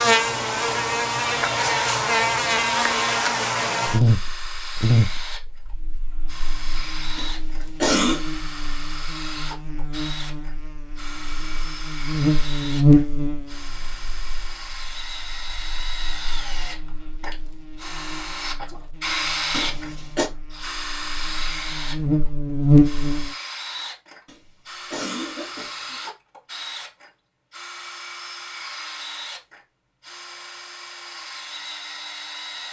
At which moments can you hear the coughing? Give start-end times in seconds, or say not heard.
7.2-8.2, 19.5-20.3, 24.2-26.0.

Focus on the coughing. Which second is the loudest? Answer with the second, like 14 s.
8 s.